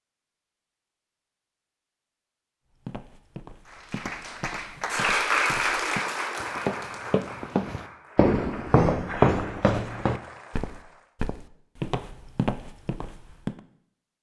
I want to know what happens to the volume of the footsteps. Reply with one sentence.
The volume of the footsteps goes up, then down.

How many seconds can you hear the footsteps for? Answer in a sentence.
You can hear the footsteps for 11 seconds altogether.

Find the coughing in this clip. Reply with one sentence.
You can't hear the coughing here.